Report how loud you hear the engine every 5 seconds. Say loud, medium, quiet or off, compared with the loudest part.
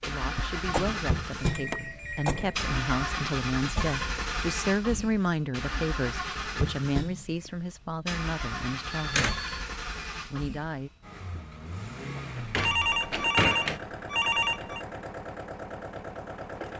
loud, loud, medium, medium.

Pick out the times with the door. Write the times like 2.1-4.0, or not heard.
0.3-2.8, 8.6-9.3, 12.2-13.8.